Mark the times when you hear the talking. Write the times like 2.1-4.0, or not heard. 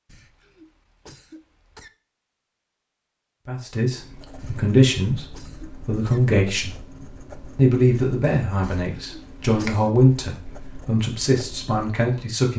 3.5-6.8, 7.5-12.5.